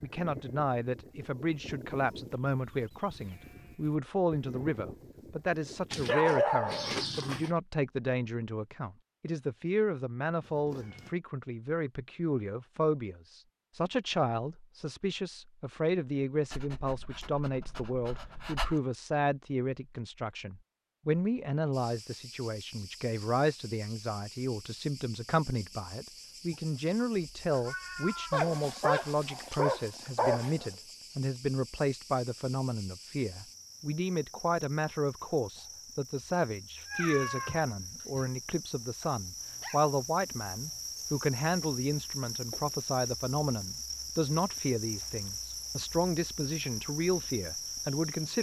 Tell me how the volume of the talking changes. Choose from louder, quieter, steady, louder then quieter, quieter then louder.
steady.